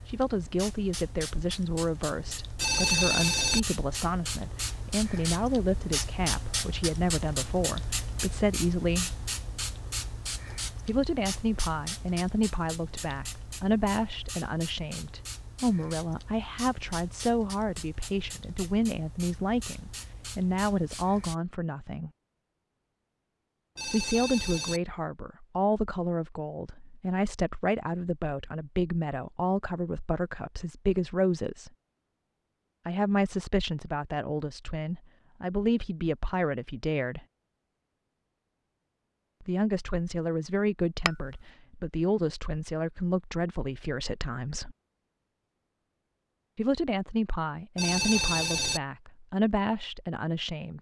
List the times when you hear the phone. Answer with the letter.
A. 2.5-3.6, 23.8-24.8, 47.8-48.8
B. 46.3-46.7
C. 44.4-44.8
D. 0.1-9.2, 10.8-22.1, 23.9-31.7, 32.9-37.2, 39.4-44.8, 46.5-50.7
A.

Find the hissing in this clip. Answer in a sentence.
The hissing can be heard from 0.0 to 21.4 s.